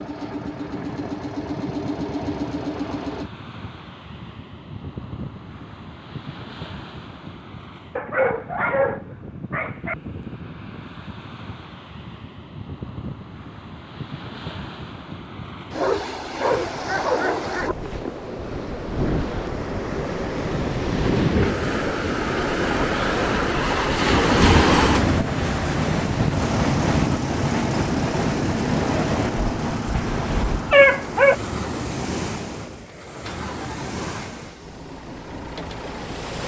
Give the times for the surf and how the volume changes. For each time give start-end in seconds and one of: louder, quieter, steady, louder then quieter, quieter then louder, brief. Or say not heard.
0.0-36.4 louder then quieter.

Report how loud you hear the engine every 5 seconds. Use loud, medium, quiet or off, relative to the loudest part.
loud, off, off, off, off, loud, medium, medium.